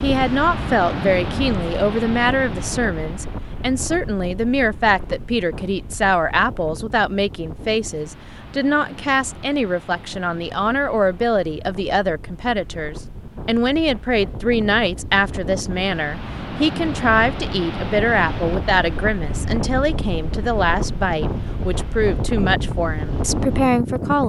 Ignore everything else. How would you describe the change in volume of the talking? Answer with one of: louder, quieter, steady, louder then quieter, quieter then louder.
steady.